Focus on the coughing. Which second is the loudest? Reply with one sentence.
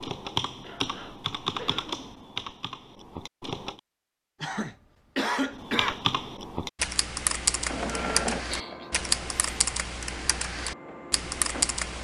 The loudest moment of the coughing is at 5 seconds.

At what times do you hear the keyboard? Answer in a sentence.
The keyboard can be heard from 0.0 to 3.8 s and from 5.5 to 11.9 s.